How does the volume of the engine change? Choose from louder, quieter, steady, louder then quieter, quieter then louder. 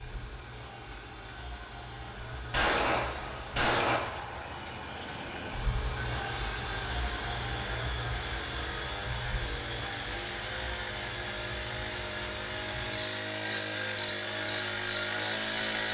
louder.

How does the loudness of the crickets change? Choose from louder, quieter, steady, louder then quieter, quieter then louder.
louder then quieter.